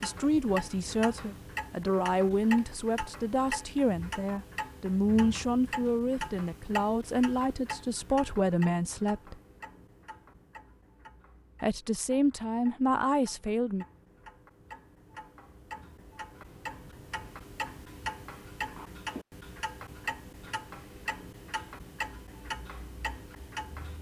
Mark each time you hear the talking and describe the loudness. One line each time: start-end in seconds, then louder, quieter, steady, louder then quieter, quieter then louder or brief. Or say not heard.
0.0-9.3 steady
11.6-13.8 brief.